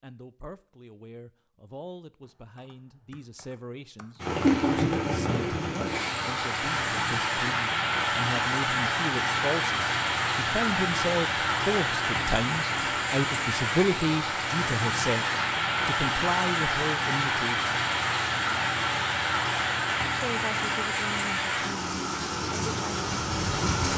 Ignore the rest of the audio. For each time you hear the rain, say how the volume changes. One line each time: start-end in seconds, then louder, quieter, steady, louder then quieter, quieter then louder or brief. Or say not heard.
4.2-23.9 steady.